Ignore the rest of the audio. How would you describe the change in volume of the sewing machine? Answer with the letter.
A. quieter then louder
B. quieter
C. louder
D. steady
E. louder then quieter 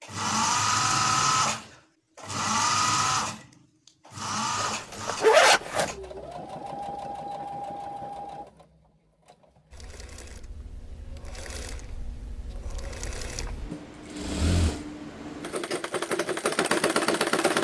A.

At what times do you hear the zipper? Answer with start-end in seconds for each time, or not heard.
4.5-6.0.